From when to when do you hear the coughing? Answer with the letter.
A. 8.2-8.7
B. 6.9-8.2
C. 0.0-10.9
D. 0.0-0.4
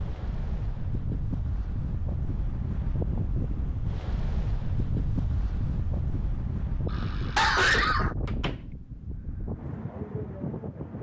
B.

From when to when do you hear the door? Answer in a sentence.
The door can be heard from 8.2 to 8.7 s.